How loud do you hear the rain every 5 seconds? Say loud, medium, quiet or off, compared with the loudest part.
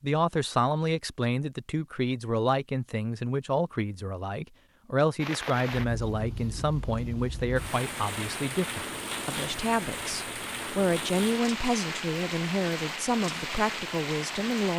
off, loud, loud.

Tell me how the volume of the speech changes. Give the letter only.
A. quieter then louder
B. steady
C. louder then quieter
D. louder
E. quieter
B.